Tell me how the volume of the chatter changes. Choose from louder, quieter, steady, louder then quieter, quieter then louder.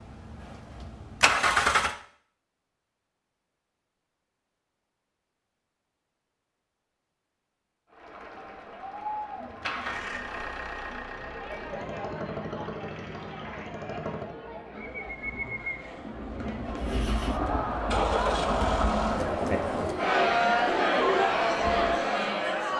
louder.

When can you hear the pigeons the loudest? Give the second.
21 s.